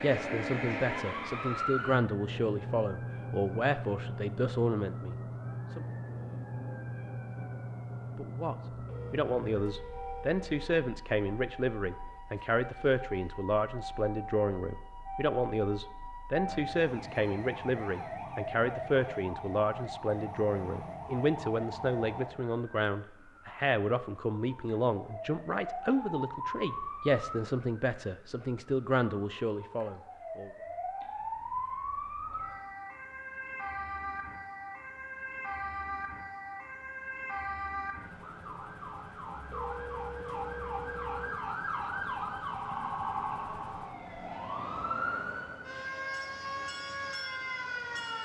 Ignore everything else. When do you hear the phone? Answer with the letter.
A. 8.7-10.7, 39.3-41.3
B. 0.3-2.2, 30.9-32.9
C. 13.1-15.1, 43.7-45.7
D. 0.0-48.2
A.